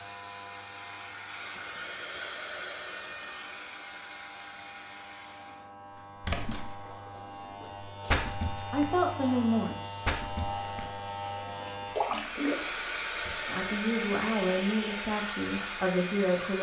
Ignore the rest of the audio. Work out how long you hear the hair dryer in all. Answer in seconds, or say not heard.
10 s.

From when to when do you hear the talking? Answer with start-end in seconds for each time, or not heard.
8.7-10.2, 13.4-16.5.